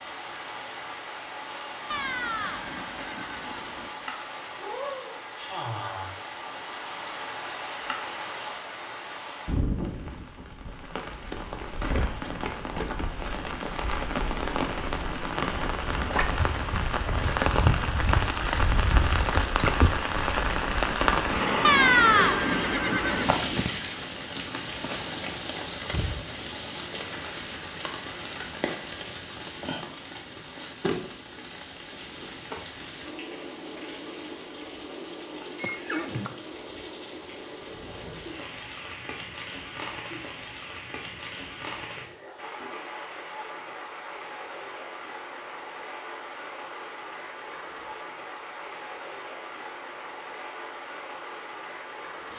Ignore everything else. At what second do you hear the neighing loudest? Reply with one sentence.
The volume of the neighing peaks at 22 seconds.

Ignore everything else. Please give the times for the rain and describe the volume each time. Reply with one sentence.
The rain can be heard from 0.0 to 52.3 s, getting louder then quieter.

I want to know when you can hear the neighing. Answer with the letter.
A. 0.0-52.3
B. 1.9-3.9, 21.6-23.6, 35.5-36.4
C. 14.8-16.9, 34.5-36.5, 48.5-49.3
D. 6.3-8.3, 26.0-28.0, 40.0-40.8
B.